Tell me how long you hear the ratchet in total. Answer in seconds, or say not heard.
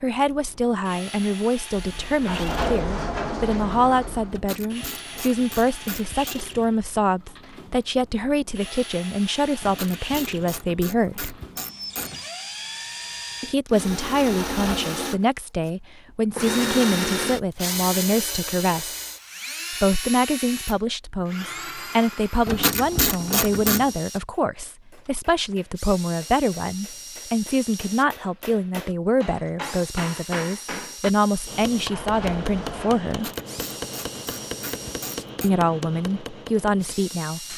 9 s.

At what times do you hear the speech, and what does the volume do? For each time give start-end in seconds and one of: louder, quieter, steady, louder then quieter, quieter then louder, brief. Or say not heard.
0.0-11.3 steady
13.4-18.9 steady
19.7-33.3 steady
35.4-37.5 brief.